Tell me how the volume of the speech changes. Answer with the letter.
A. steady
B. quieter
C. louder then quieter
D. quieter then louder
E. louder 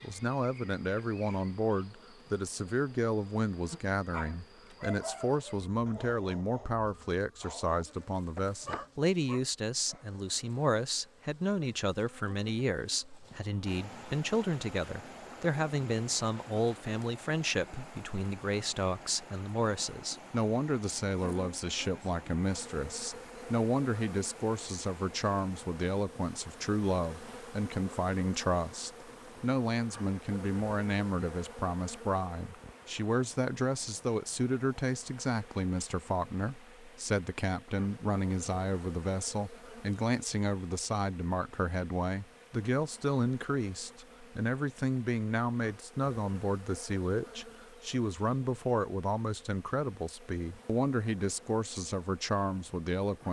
A.